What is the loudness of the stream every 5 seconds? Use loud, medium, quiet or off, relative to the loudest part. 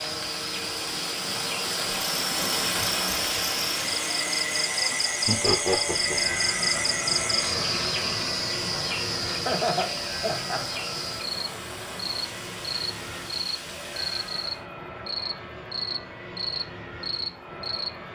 loud, medium, medium, off.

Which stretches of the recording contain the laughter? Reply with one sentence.
The laughter can be heard from 5.2 to 6.3 s and from 9.4 to 10.8 s.